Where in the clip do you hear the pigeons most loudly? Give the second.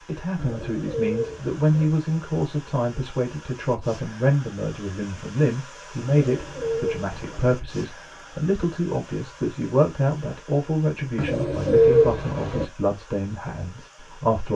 12 s.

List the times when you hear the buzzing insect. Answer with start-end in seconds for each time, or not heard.
not heard.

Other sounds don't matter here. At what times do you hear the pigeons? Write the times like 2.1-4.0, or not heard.
0.3-1.9, 6.2-7.5, 11.2-12.7.